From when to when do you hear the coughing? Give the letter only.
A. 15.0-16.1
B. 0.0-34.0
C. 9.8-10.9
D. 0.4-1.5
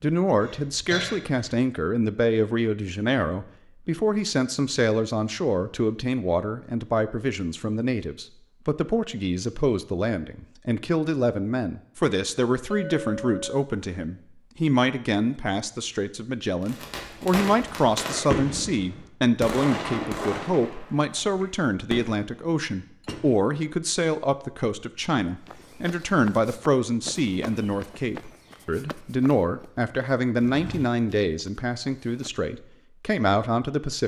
D.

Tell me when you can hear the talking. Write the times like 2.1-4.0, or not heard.
0.0-34.0.